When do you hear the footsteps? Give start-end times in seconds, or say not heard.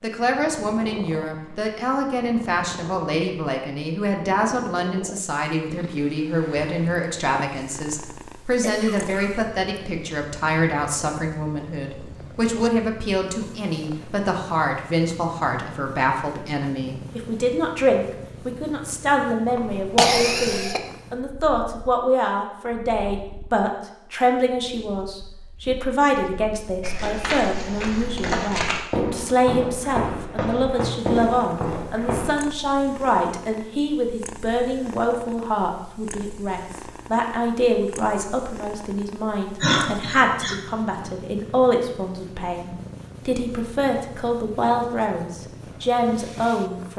26.8-32.4.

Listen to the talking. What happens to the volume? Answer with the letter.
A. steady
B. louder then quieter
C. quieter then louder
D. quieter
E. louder
A.